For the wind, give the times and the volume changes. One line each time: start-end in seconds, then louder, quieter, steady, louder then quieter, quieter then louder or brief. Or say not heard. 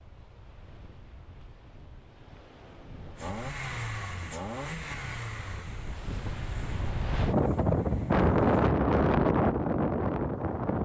0.0-10.7 louder.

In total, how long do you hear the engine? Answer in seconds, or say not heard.
5 s.